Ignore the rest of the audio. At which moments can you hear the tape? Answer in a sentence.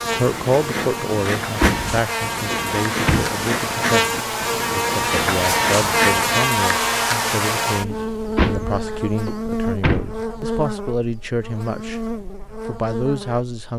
You can't hear the tape here.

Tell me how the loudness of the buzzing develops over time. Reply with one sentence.
The volume of the buzzing goes up, then down.